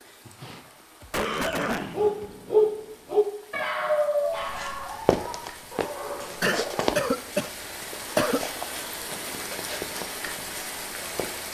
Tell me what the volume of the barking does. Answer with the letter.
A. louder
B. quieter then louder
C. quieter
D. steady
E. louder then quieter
C.